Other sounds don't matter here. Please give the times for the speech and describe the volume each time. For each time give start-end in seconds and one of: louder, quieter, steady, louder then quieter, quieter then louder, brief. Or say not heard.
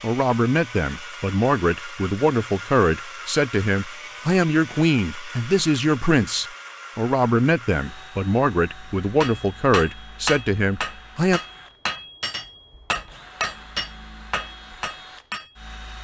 0.0-11.4 steady.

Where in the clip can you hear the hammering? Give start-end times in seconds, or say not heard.
9.2-15.6.